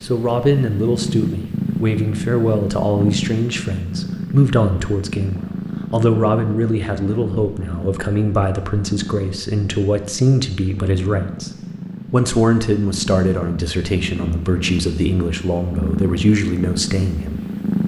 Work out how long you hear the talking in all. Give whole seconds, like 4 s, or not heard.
17 s.